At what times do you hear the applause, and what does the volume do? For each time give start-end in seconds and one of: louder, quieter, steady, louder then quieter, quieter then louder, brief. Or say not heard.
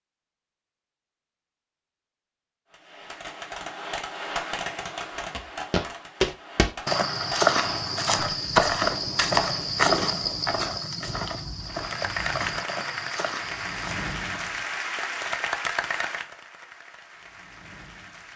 11.7-18.3 quieter.